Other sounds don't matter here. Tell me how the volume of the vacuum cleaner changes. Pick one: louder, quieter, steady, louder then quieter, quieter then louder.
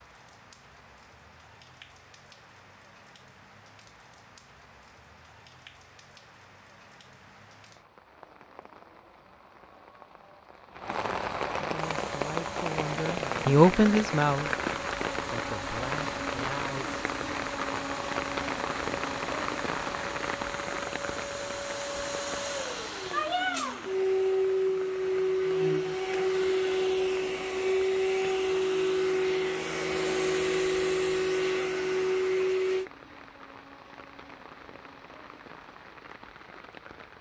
louder.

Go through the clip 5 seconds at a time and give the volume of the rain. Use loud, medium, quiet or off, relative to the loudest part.
quiet, quiet, loud, loud, medium, quiet, quiet, quiet.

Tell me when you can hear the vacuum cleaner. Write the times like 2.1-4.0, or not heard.
11.8-32.9.